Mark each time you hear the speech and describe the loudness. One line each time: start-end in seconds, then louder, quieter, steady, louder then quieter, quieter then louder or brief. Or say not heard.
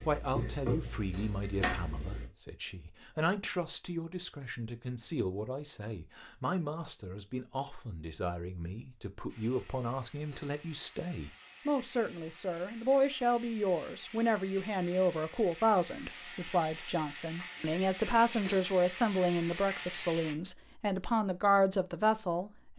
0.1-22.7 louder.